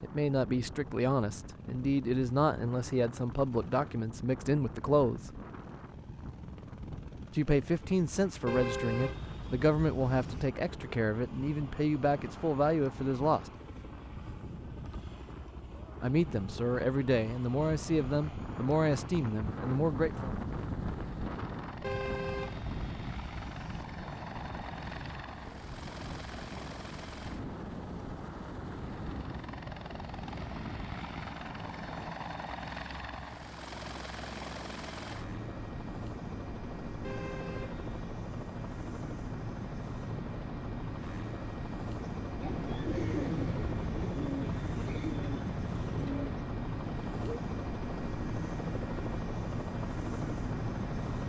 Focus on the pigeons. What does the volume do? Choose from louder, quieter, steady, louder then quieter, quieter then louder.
quieter.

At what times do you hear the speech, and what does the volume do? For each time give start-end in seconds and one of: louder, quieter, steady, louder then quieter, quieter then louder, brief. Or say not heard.
0.0-5.3 steady
7.3-13.5 steady
16.0-20.3 steady.